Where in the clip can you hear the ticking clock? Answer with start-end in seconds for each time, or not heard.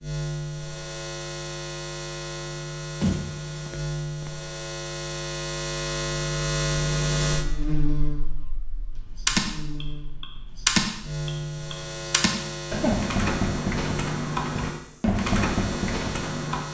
not heard.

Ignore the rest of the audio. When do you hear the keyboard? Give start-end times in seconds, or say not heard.
9.2-16.6.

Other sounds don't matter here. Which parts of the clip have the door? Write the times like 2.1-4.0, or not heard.
3.0-4.3.